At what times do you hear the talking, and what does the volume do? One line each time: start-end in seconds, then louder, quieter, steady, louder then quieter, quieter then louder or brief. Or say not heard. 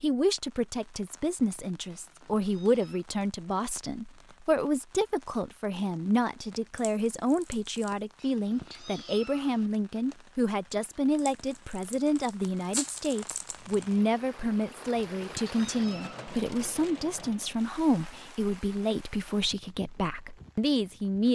0.0-21.3 steady.